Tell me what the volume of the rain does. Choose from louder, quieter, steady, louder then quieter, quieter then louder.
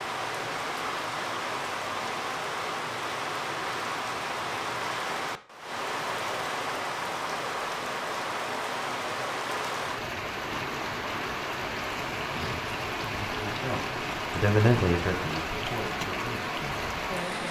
steady.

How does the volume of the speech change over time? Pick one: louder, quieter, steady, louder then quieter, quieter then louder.
louder then quieter.